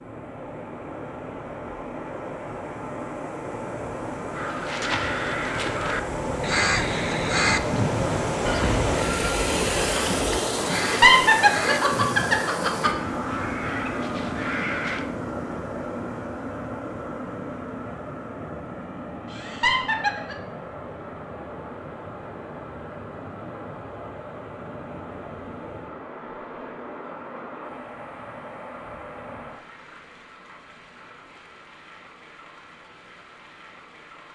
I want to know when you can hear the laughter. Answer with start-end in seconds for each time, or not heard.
10.7-12.9, 19.3-20.4.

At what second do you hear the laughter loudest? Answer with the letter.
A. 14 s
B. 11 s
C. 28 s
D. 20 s
B.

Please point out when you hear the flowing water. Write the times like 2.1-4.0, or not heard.
0.0-34.3.